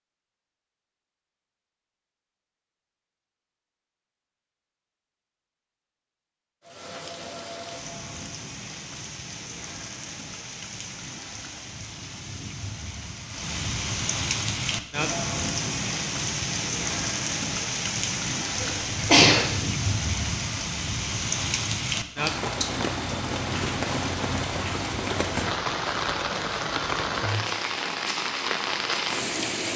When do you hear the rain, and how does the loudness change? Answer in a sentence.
You can hear the rain from 6.6 to 29.7 s, getting louder.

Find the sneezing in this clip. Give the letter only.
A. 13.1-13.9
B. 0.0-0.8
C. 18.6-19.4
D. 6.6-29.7
C.